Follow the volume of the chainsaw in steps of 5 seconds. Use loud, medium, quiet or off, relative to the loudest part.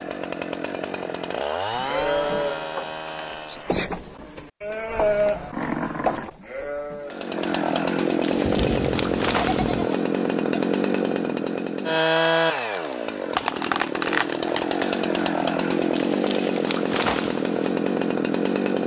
medium, loud, loud, loud.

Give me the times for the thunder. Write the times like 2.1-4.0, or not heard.
8.4-9.9.